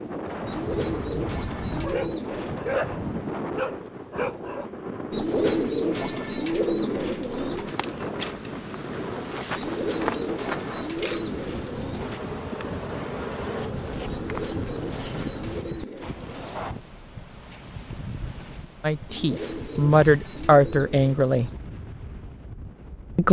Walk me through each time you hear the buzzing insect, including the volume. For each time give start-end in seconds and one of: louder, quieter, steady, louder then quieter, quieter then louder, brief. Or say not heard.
7.7-15.7 steady.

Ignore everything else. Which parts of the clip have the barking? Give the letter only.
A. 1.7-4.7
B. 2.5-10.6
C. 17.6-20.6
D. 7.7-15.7
A.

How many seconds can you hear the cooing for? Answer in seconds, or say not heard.
13 s.